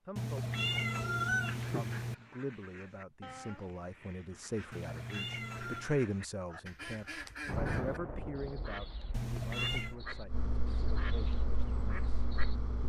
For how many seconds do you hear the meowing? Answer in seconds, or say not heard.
4 s.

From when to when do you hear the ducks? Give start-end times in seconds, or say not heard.
1.4-12.6.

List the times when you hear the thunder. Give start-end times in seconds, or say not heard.
7.5-8.8.